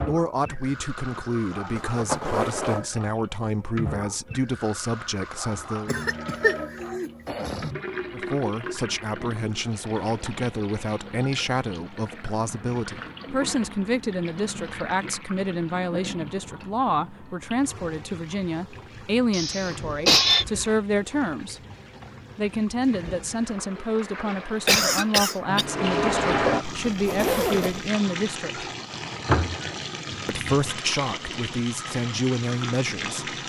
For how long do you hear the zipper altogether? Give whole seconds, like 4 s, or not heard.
2 s.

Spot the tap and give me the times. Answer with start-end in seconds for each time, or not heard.
0.0-33.4.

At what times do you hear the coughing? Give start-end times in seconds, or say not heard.
5.8-7.7, 19.3-20.4, 24.6-25.6.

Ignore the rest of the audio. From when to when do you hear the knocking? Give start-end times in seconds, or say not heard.
not heard.